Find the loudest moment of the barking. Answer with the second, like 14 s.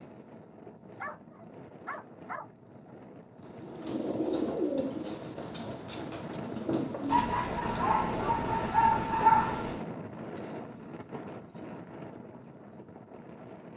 9 s.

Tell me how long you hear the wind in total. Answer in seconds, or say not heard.
14 s.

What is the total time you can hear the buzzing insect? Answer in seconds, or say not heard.
not heard.